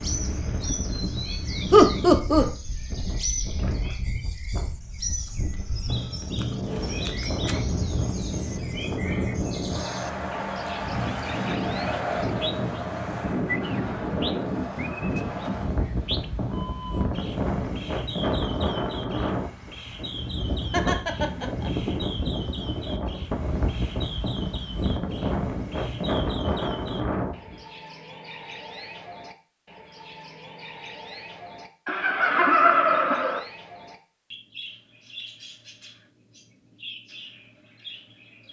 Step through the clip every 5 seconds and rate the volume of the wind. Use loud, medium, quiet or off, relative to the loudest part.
medium, loud, loud, loud, loud, loud, off, off.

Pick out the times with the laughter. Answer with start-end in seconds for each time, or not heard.
1.7-2.5, 20.7-21.7, 31.9-33.4.